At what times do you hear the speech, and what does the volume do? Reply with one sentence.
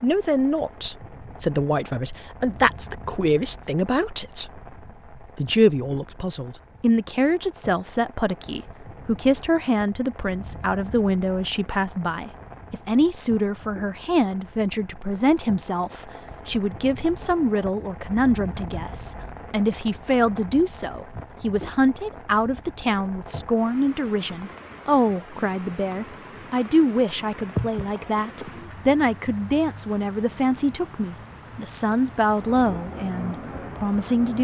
You can hear the speech from 0.0 to 4.6 s, at a steady volume; and from 5.3 to 34.4 s, at a steady volume.